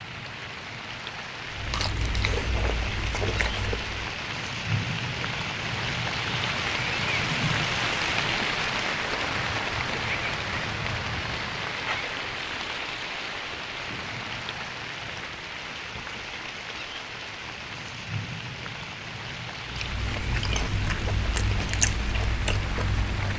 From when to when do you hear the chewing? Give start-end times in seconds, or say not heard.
1.4-4.2, 19.6-23.3.